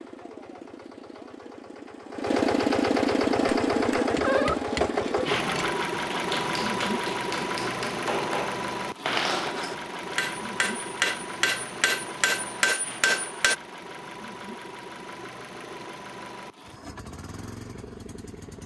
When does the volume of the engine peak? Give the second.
3 s.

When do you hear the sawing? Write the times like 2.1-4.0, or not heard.
not heard.